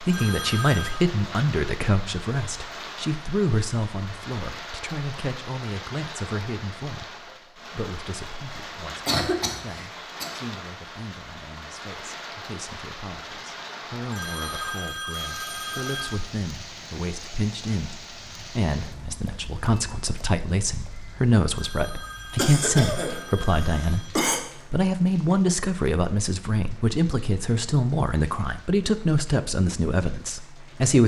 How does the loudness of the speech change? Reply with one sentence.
The volume of the speech goes down, then up.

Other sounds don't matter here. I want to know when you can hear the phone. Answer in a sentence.
You can hear the phone from 0.1 to 0.9 s, from 14.1 to 16.1 s and from 21.5 to 24.1 s.